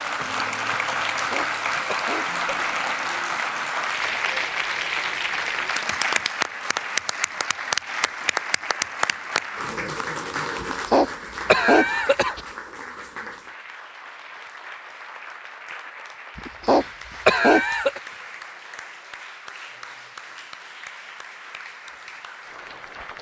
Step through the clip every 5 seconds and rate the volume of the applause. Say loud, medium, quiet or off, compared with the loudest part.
loud, loud, medium, quiet, quiet.